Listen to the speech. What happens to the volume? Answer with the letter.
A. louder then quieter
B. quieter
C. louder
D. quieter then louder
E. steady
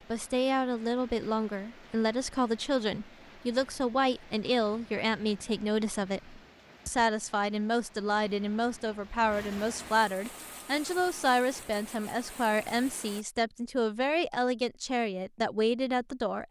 E.